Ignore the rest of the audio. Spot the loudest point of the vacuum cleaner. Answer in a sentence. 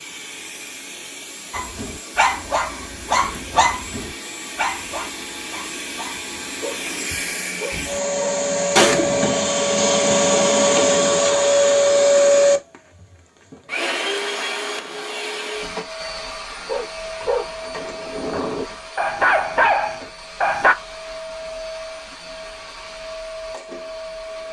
The volume of the vacuum cleaner peaks at 12 seconds.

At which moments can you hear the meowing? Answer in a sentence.
The meowing can be heard from 8.8 to 9.3 s.